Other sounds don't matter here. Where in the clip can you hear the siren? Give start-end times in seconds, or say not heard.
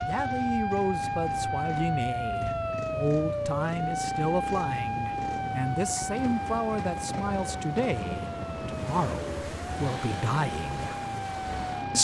0.0-11.9.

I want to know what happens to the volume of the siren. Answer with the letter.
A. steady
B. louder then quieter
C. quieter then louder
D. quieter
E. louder
D.